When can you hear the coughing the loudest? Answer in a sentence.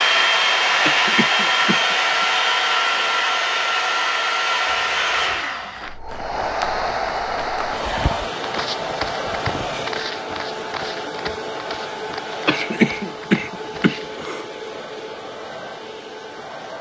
The volume of the coughing peaks at 13 seconds.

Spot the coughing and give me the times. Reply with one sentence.
You can hear the coughing from 0.8 to 2.2 s and from 12.4 to 14.4 s.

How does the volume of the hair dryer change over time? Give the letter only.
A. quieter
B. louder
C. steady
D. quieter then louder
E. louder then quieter
A.